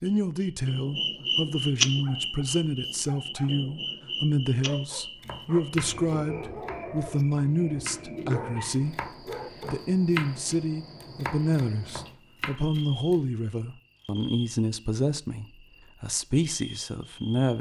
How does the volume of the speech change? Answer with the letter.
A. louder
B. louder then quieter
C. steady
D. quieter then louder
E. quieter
C.